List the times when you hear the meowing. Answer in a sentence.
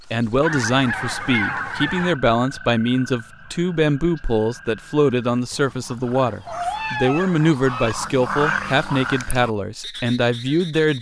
The meowing can be heard from 6.5 to 7.4 s.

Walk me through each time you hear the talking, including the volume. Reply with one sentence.
The talking can be heard from 0.1 to 10.9 s, at a steady volume.